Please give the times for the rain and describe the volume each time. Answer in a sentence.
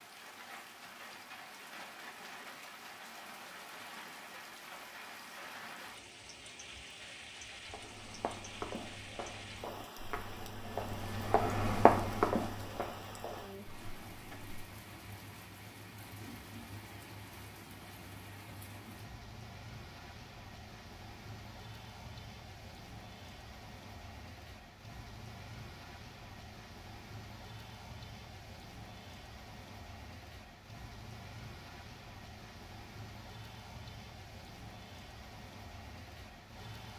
You can hear the rain from 0.0 to 36.9 s, at a steady volume.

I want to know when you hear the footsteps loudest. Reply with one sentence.
The volume of the footsteps peaks at 12 seconds.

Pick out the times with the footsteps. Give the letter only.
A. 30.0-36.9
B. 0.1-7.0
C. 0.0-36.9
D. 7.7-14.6
D.